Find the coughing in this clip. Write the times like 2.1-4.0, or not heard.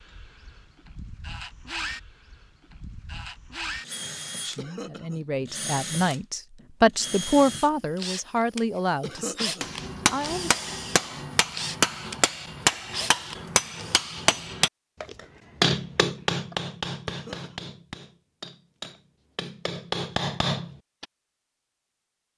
4.5-5.2, 9.0-9.7, 17.1-17.7.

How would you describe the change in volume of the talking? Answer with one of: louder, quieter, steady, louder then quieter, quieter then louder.
louder then quieter.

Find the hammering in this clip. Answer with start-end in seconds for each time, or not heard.
9.6-21.1.